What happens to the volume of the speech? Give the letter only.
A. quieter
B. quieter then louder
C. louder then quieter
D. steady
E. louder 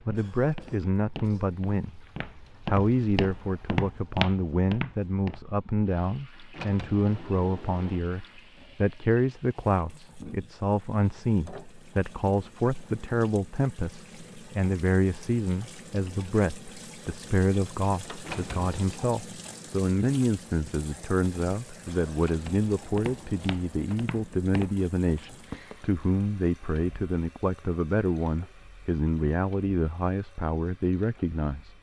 D.